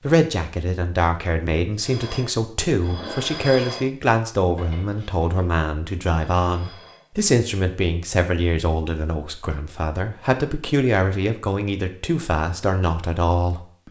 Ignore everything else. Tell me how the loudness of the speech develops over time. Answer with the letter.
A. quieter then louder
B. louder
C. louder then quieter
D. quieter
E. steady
E.